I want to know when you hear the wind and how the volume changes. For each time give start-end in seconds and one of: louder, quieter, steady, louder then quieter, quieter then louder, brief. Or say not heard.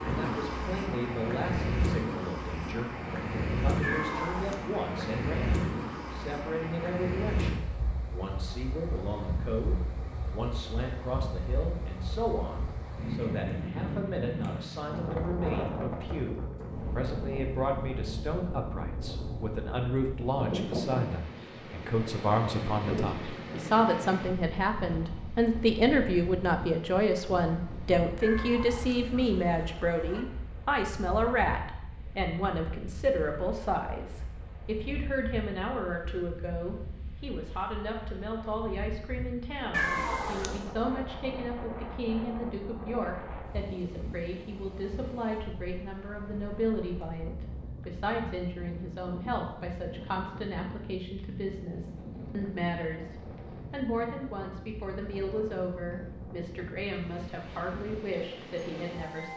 0.0-59.3 quieter.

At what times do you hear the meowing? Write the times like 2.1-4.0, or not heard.
3.8-4.7, 28.2-30.2, 39.7-40.7.